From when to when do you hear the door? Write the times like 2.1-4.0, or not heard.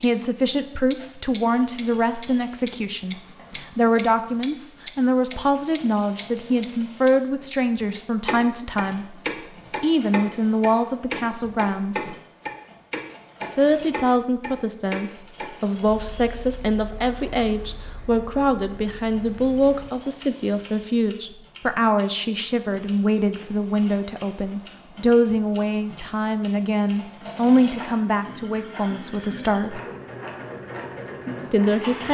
not heard.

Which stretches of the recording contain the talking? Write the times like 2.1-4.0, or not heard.
0.0-9.2, 9.8-12.2, 13.6-29.8, 31.5-32.0.